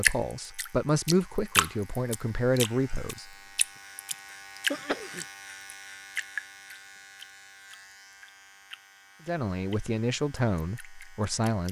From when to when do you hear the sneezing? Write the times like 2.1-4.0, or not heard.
4.7-5.2.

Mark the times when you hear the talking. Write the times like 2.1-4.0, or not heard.
0.0-3.4, 9.2-11.6.